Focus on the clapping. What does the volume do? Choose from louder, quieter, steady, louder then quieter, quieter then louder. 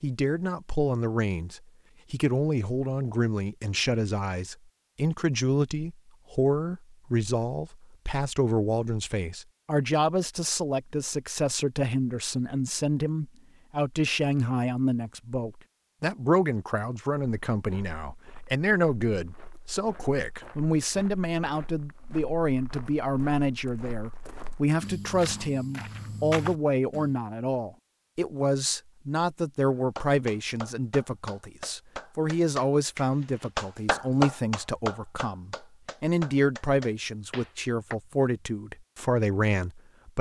louder then quieter.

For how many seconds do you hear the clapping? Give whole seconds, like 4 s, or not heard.
8 s.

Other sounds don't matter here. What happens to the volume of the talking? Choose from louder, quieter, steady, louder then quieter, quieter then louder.
steady.